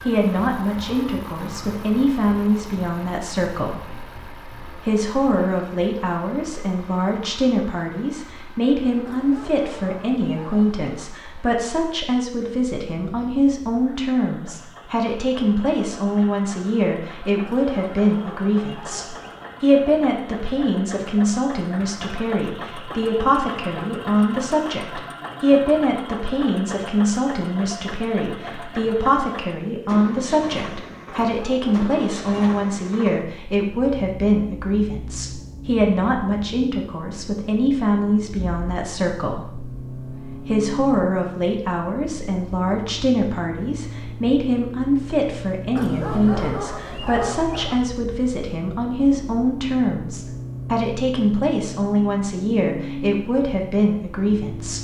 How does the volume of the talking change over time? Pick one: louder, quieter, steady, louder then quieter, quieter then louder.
steady.